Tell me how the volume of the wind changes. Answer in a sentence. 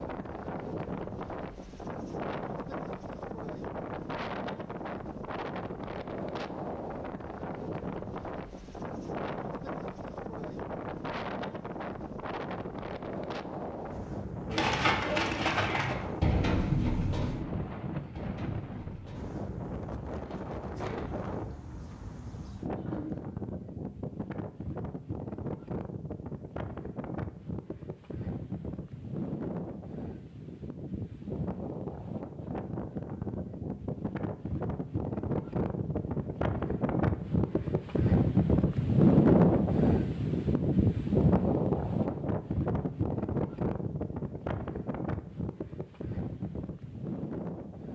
The loudness of the wind goes up.